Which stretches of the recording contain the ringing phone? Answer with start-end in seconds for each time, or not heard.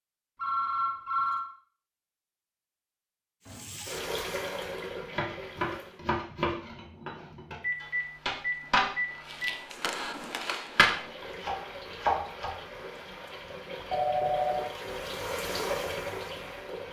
0.3-1.4, 7.6-9.6, 13.9-14.8.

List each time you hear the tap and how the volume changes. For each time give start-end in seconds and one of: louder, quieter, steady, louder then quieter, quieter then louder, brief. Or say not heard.
3.5-6.0 brief
10.9-16.8 louder.